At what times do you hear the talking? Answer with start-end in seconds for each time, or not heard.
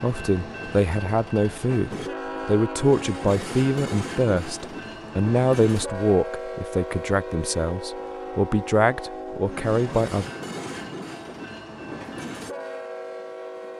0.0-10.3.